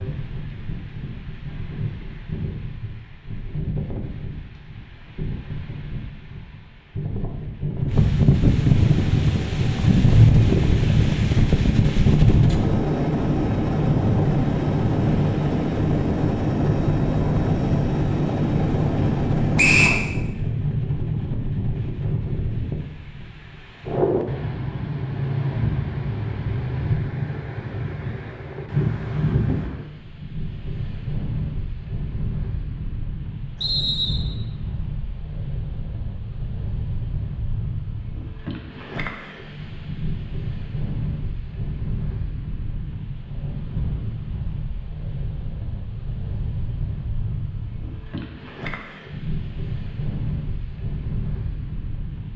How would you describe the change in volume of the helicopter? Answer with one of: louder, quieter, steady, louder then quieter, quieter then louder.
louder.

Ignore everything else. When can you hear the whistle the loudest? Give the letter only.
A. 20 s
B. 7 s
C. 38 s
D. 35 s
A.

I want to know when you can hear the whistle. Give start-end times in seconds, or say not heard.
19.6-20.0, 33.6-34.2.